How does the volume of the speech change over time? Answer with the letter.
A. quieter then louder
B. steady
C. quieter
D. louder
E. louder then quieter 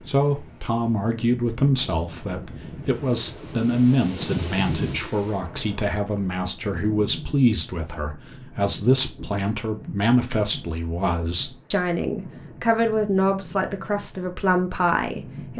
B.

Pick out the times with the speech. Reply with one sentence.
You can hear the speech from 0.1 to 15.5 s.